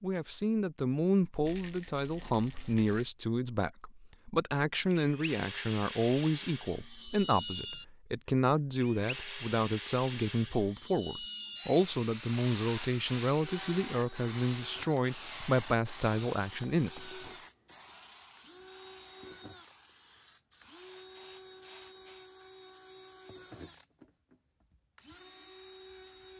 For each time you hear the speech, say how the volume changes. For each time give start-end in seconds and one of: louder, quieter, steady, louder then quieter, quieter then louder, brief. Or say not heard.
0.0-17.1 steady.